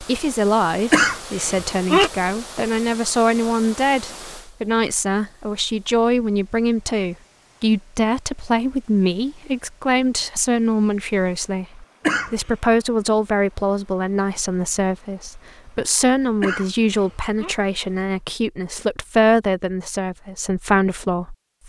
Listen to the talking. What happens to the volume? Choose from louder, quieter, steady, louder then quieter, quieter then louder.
steady.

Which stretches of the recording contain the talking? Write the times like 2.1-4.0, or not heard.
0.0-21.6.